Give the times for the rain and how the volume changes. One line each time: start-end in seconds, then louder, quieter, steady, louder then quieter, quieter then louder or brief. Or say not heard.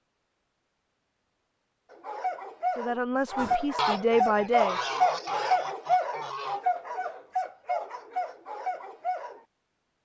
not heard.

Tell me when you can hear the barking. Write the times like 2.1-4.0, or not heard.
1.9-9.4.